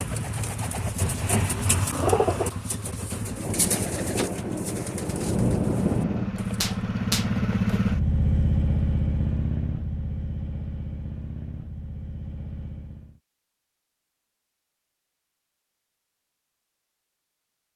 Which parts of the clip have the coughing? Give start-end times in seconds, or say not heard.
not heard.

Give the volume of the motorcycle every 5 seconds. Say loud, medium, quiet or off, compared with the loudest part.
medium, loud, medium, off.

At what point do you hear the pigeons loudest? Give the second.
2 s.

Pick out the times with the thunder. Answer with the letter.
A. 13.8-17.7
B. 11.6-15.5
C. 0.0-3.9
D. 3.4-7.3
D.